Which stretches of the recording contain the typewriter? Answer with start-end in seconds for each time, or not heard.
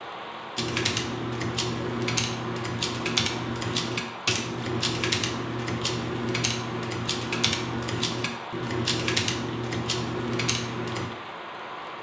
0.6-11.1.